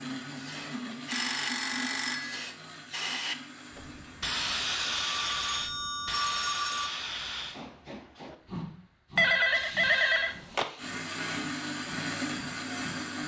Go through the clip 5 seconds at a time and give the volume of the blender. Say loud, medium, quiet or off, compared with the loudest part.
medium, off, loud.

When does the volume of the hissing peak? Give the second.
5 s.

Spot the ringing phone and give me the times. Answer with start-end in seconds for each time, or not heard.
1.1-2.5, 5.0-7.0, 9.2-10.7.